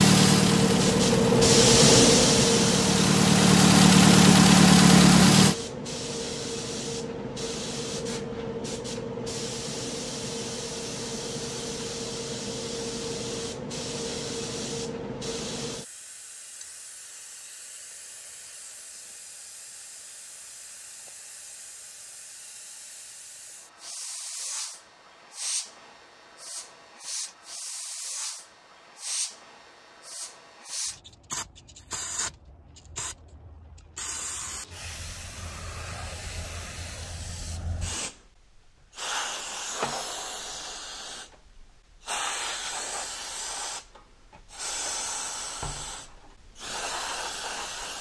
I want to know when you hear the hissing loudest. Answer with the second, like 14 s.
2 s.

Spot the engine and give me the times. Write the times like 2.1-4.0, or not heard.
0.0-5.5.